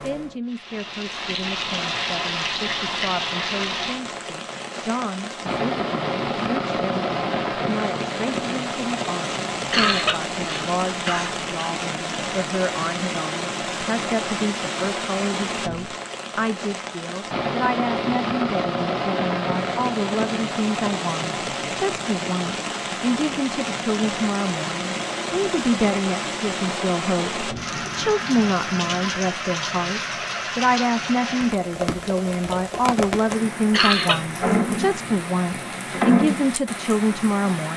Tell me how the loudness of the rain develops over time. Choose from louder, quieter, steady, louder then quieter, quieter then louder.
steady.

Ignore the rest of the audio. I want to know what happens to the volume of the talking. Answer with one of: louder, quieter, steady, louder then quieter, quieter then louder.
louder.